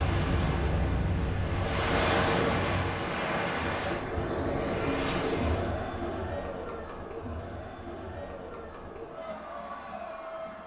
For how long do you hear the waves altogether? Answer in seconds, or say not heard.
6 s.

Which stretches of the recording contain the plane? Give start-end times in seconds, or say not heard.
0.0-3.0.